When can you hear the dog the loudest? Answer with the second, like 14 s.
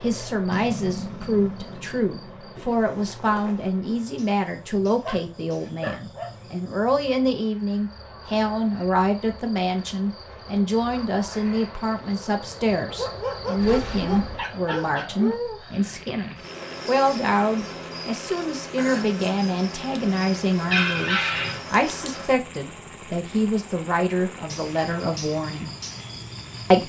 21 s.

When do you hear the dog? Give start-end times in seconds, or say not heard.
5.0-6.3, 12.8-15.4, 20.6-21.6.